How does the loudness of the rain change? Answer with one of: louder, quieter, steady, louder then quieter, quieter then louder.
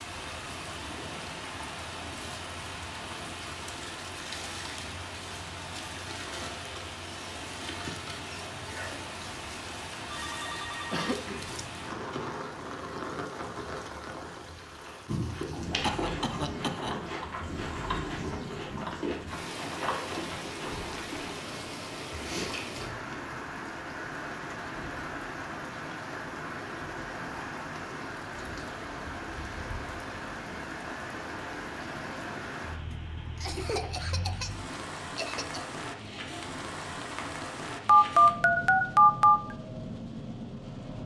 steady.